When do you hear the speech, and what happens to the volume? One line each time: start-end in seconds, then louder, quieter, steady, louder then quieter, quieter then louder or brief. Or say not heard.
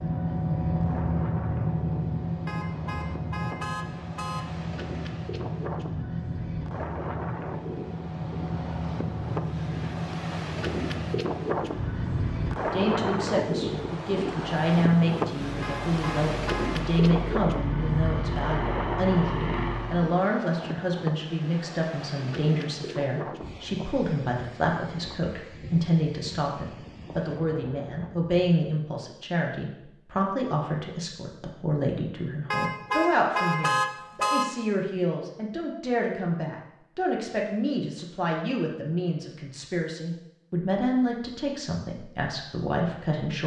12.7-43.4 steady.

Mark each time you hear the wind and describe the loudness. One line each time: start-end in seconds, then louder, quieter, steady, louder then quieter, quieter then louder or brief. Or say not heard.
0.0-28.4 louder then quieter.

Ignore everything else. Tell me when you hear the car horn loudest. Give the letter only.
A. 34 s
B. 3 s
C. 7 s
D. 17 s
A.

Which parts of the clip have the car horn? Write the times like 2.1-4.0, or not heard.
2.5-4.5, 15.6-16.7, 32.5-34.5.